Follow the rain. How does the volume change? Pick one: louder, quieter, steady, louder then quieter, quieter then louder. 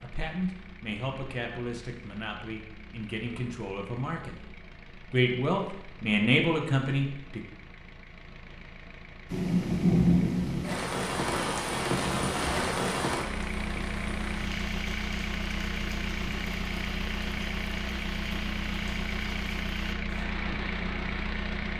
quieter.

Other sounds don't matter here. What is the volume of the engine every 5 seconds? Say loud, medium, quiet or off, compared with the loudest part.
quiet, quiet, loud, loud, loud.